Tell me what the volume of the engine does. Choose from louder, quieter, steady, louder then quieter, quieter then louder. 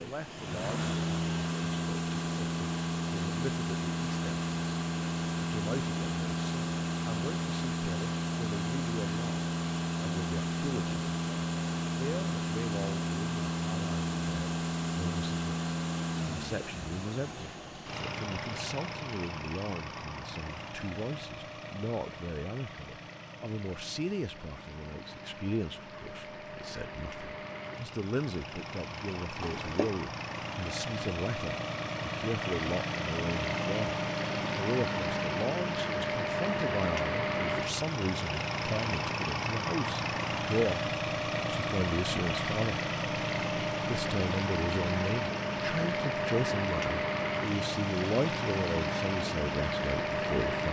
quieter then louder.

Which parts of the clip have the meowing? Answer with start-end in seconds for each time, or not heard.
29.4-29.9.